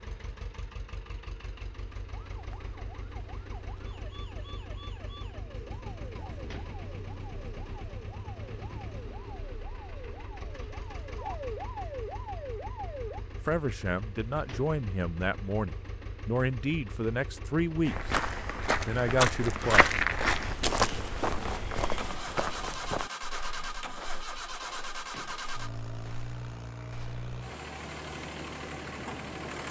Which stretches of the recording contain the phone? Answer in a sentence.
The phone can't be heard in this clip.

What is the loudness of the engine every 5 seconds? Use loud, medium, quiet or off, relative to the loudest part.
medium, medium, medium, medium, loud, loud.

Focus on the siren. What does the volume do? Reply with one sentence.
The volume of the siren goes up.